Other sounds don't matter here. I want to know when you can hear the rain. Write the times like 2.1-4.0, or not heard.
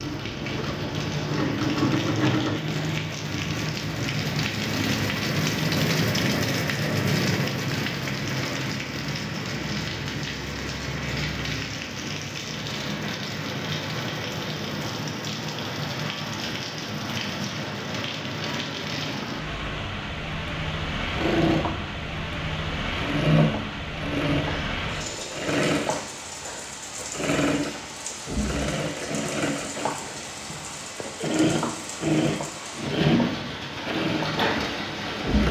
0.0-35.4.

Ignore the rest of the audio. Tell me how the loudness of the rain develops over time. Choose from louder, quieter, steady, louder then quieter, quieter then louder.
quieter.